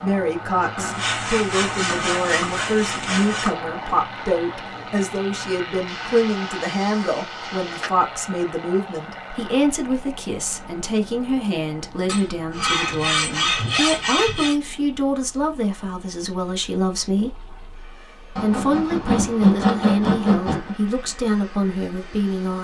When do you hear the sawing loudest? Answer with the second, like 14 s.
20 s.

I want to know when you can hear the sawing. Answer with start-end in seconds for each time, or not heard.
0.8-3.5, 5.8-7.9, 12.1-14.6, 18.4-20.8.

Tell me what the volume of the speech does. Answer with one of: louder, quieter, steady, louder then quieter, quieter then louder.
steady.